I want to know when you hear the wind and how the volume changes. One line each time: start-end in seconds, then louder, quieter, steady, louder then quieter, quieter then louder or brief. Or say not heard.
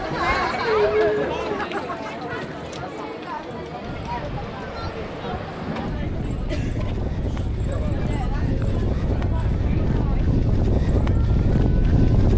3.8-12.3 louder.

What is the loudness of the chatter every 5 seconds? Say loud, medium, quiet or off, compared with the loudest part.
loud, medium, quiet.